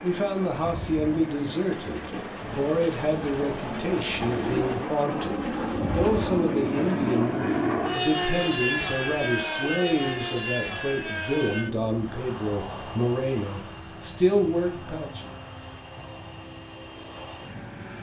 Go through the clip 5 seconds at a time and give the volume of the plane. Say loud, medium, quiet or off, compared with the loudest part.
medium, loud, medium, quiet.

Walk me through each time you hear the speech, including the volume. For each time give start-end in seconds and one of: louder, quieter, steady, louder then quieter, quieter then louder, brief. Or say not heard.
0.0-15.3 steady.